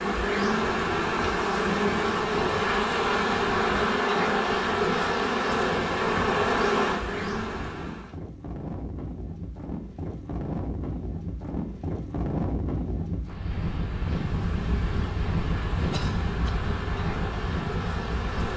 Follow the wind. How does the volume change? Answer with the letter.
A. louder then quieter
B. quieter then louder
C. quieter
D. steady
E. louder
E.